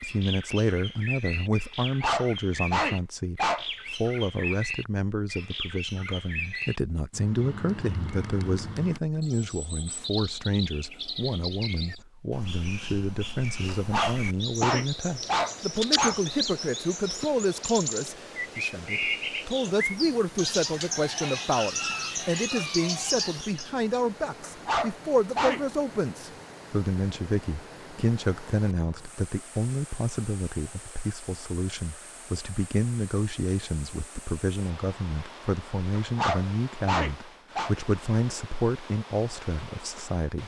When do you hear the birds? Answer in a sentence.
You can hear the birds from 0.0 to 23.8 s.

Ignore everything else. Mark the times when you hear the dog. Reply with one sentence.
The dog can be heard from 1.8 to 3.6 s, from 13.7 to 16.2 s, from 24.4 to 25.6 s and from 36.0 to 37.8 s.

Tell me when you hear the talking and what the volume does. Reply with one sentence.
The talking can be heard from 0.0 to 40.4 s, at a steady volume.